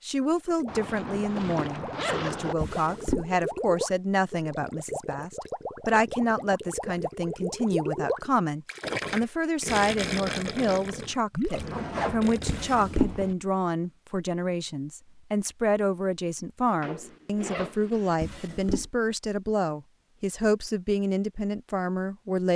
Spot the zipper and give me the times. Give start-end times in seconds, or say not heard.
0.7-2.5, 11.6-13.3, 16.8-18.1.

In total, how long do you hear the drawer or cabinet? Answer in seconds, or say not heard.
2 s.